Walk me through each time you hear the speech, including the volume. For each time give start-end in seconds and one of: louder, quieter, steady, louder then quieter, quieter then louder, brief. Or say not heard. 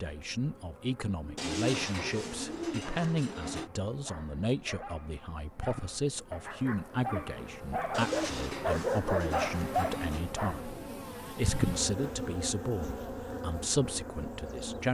0.0-14.8 steady.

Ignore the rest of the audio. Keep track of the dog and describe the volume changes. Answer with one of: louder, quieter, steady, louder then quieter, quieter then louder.
louder.